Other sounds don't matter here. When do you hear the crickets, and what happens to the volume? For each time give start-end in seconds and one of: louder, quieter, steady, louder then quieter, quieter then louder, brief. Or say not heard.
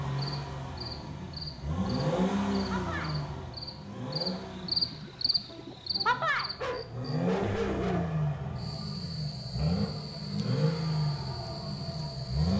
0.2-12.5 louder then quieter.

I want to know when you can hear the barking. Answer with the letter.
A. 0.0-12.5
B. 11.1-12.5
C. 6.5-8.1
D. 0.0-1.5
C.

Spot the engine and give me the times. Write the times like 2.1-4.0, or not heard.
0.0-12.5.